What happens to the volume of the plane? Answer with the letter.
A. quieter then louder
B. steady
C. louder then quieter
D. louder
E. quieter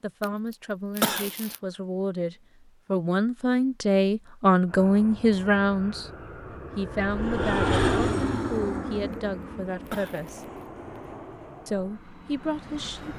C.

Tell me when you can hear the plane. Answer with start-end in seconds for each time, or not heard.
4.7-13.1.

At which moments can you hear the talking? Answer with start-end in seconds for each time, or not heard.
0.0-6.1, 6.8-10.4, 11.7-13.1.